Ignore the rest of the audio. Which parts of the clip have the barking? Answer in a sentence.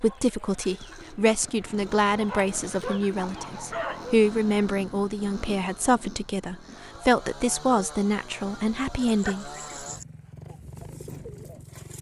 You can hear the barking from 2.2 to 4.2 s and from 8.4 to 10.1 s.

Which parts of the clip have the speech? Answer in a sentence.
You can hear the speech from 0.0 to 9.5 s.